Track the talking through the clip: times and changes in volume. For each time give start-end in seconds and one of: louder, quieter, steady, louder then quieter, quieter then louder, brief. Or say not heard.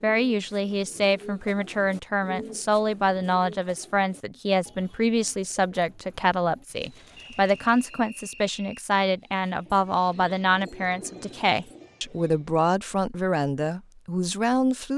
0.0-14.9 steady.